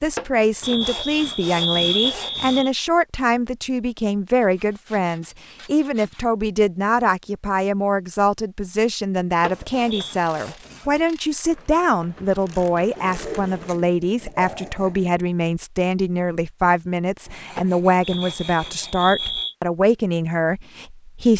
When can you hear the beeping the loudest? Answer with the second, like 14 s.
2 s.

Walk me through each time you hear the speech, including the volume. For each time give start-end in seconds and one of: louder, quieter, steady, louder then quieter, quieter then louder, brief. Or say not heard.
0.0-21.3 steady.